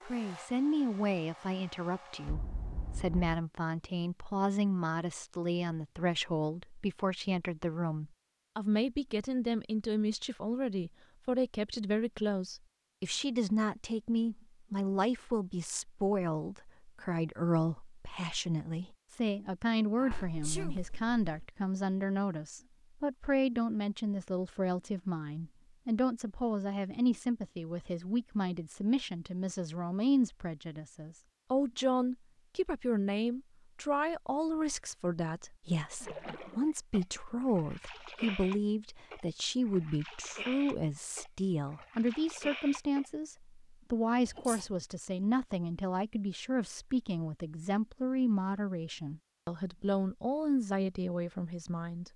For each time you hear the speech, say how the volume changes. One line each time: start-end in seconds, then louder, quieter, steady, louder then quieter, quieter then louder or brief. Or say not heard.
0.1-52.1 steady.